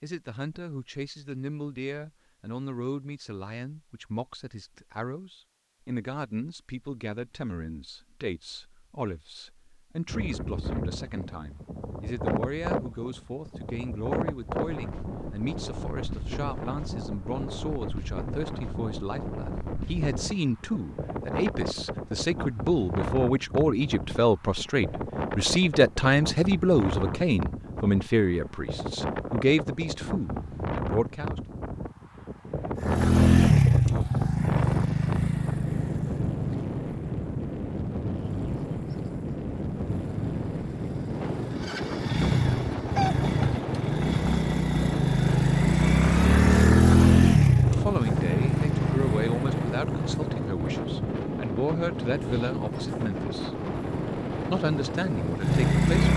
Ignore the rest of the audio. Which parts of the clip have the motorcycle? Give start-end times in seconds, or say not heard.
32.8-56.1.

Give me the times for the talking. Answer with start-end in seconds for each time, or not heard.
0.0-31.4, 47.7-56.1.